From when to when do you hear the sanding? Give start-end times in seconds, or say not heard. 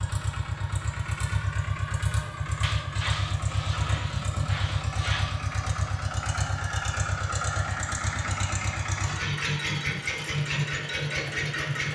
2.6-5.4.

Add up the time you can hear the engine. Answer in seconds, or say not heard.
12 s.